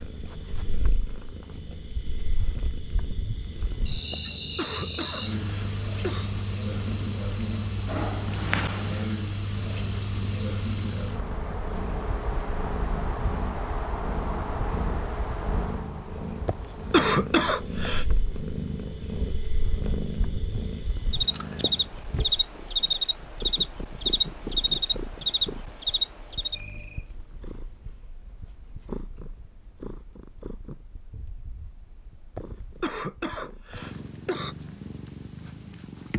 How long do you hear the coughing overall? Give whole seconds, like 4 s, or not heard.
6 s.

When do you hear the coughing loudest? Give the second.
17 s.